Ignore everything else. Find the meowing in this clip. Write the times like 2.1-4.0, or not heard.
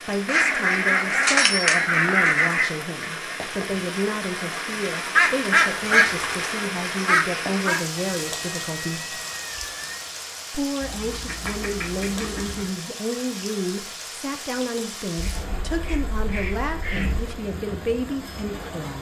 8.0-10.1.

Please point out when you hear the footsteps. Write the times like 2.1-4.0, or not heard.
not heard.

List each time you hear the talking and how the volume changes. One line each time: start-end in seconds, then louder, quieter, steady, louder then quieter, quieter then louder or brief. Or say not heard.
0.0-9.2 steady
10.5-18.9 steady.